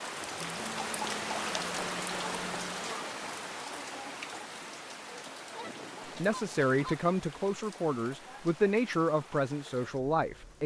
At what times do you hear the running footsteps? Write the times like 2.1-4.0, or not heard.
not heard.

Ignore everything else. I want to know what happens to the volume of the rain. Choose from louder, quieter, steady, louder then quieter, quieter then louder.
quieter.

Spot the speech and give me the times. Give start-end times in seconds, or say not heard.
6.2-10.6.